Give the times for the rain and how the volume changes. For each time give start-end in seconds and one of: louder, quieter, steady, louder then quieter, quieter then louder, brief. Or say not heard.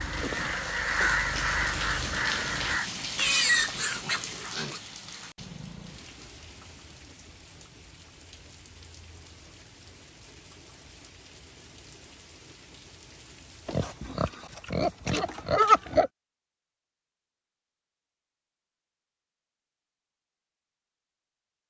0.0-14.2 quieter.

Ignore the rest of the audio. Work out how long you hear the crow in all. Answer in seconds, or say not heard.
3 s.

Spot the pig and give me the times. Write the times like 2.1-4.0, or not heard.
3.1-4.8, 13.7-16.1.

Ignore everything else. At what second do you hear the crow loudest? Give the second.
1 s.